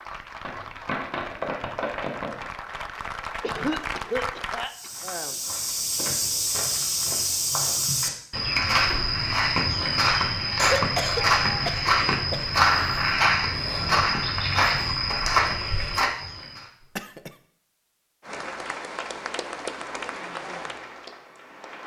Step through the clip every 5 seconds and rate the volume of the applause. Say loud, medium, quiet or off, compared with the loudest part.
loud, off, off, loud, loud.